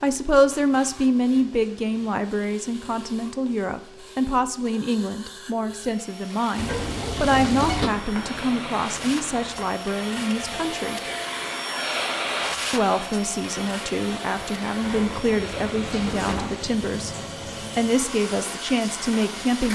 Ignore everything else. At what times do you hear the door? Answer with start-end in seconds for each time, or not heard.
6.5-7.9, 14.8-16.6.